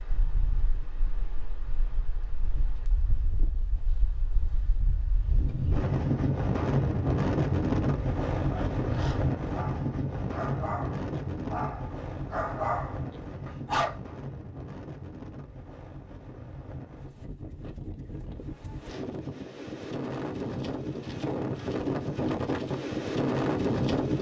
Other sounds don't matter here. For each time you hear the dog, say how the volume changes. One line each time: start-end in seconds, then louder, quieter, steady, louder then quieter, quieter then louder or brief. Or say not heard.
8.3-13.9 louder.